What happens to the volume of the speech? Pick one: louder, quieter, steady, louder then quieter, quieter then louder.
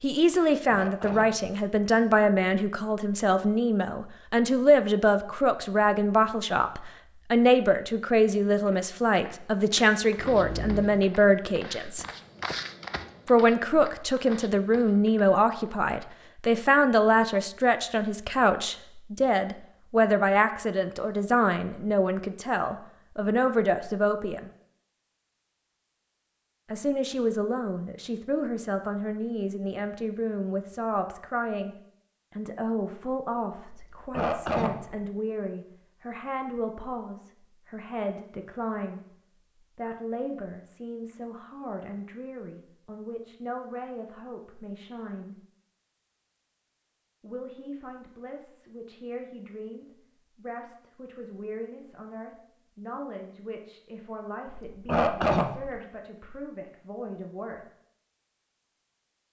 quieter.